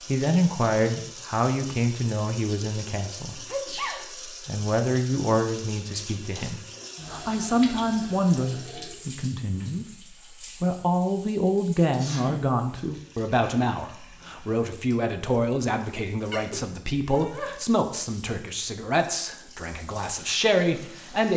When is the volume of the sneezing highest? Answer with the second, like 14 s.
4 s.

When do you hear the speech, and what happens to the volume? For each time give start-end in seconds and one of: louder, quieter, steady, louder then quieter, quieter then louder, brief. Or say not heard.
0.1-21.3 steady.